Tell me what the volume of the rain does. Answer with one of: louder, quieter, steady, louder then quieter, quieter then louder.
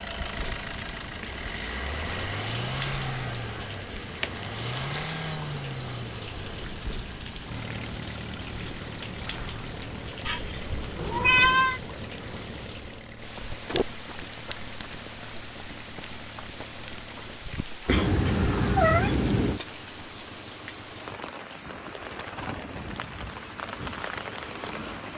steady.